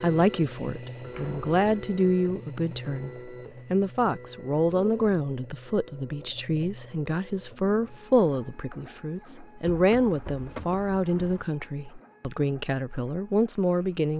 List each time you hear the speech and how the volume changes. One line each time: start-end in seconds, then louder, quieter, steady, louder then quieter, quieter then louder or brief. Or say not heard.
0.0-14.1 steady.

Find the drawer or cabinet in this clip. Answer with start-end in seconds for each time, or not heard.
not heard.